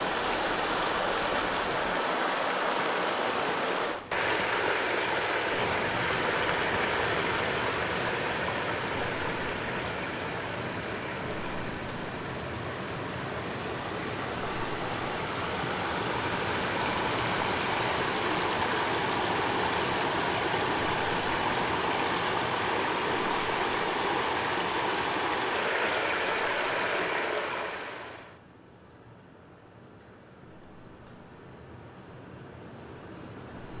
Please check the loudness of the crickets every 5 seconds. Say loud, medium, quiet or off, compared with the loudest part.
medium, loud, loud, loud, loud, quiet, quiet.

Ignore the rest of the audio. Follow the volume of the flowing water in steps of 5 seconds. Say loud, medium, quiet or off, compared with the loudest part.
loud, loud, medium, loud, loud, loud, off.